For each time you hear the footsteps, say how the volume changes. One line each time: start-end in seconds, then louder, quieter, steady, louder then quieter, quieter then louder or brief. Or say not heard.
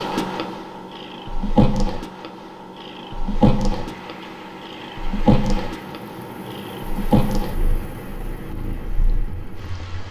not heard.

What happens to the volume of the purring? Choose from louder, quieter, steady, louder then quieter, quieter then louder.
quieter.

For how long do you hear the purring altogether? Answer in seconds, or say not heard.
10 s.